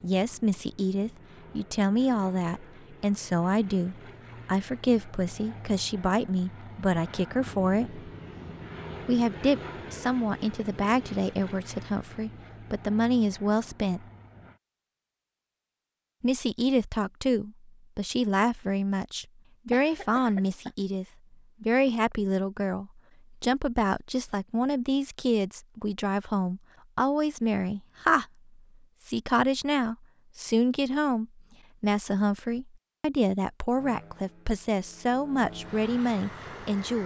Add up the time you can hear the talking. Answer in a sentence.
You can hear the talking for 33 seconds altogether.